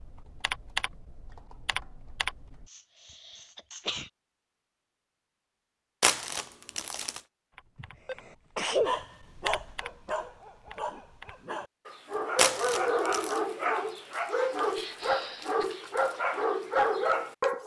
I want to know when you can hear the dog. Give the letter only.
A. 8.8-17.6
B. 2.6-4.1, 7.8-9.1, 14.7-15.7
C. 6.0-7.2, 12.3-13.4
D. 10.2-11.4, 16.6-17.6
A.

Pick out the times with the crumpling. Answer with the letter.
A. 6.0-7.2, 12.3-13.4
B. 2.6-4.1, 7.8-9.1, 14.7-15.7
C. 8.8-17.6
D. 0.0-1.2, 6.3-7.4
A.